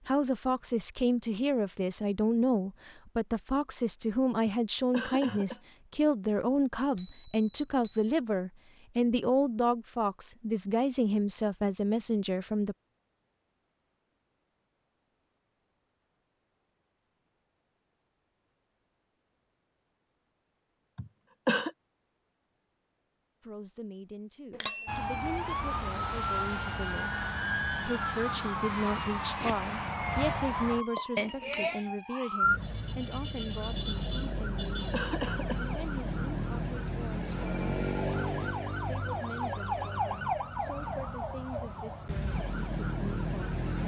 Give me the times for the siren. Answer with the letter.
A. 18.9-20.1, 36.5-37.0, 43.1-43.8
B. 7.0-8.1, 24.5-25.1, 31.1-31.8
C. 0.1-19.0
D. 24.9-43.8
D.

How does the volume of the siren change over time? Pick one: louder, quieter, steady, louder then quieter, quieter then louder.
steady.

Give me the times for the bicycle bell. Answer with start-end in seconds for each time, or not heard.
7.0-8.1, 24.5-25.1, 31.1-31.8.